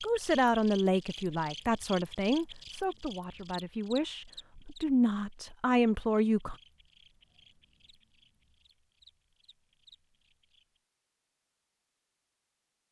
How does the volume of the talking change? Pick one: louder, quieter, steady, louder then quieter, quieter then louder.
quieter then louder.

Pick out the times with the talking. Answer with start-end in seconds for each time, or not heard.
0.0-6.5.